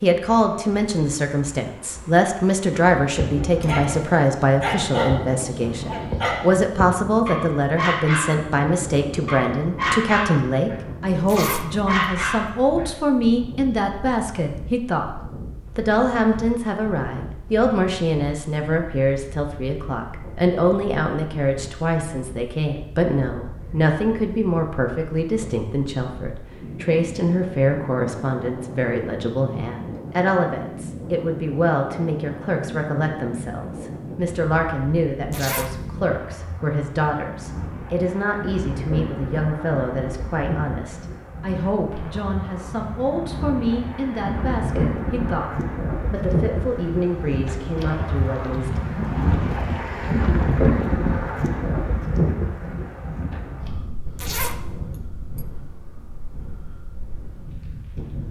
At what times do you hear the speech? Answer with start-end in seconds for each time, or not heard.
0.0-48.8.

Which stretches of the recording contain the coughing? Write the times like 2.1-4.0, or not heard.
not heard.